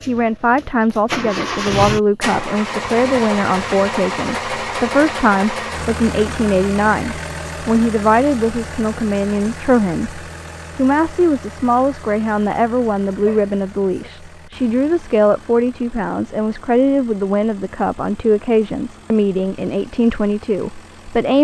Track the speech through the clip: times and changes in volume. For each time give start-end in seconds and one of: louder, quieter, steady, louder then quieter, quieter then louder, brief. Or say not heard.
0.1-21.4 steady.